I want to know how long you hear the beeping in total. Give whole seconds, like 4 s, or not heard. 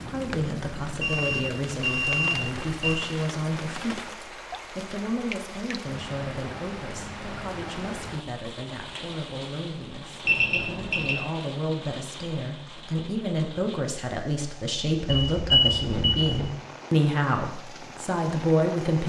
4 s.